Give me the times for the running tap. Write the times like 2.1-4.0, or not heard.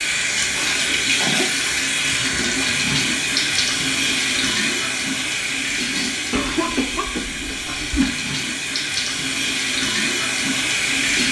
0.0-11.2.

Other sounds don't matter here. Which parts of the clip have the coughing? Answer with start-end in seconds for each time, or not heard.
0.6-1.6, 6.3-8.1.